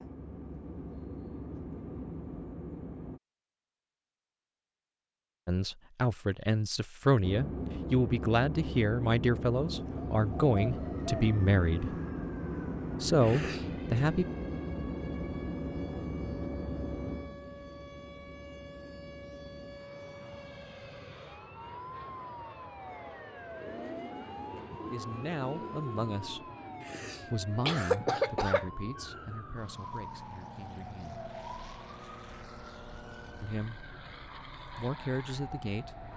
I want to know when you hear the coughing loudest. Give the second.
28 s.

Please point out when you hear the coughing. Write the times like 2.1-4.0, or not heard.
13.2-13.8, 26.8-28.7.